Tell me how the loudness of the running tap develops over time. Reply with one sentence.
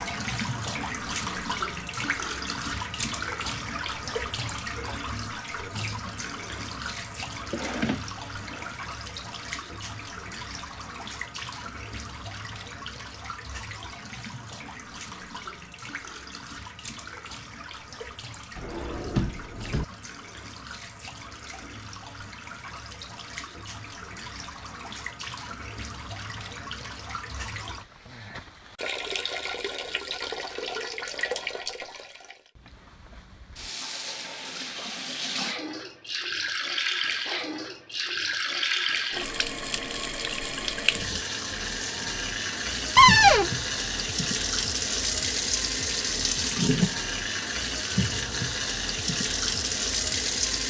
The loudness of the running tap goes down, then up.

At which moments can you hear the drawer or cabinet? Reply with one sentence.
The drawer or cabinet can be heard from 7.5 to 8.8 s, from 18.6 to 19.9 s and from 43.0 to 43.5 s.